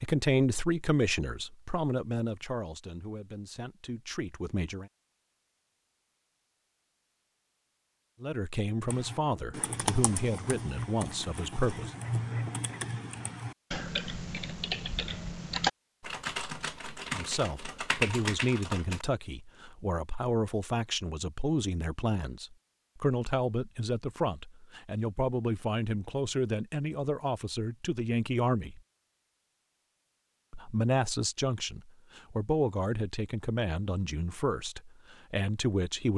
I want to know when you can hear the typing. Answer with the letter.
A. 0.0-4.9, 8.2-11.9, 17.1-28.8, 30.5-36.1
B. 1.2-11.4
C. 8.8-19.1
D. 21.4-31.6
C.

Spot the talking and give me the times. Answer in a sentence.
You can hear the talking from 0.0 to 4.9 s, from 8.2 to 11.9 s, from 17.1 to 28.8 s and from 30.5 to 36.1 s.